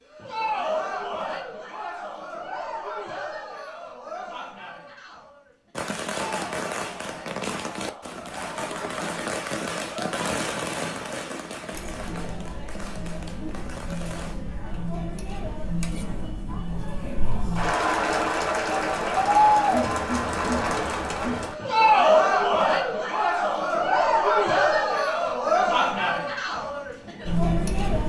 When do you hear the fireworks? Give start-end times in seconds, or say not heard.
5.7-14.3.